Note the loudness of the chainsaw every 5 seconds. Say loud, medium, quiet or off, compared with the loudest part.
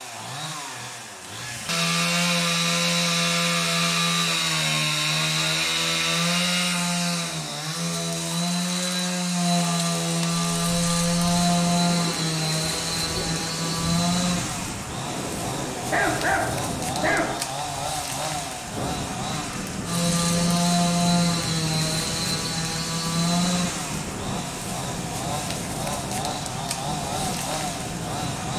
loud, loud, loud, medium, loud, medium.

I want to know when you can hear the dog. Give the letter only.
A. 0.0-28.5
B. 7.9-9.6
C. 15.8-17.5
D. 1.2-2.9
C.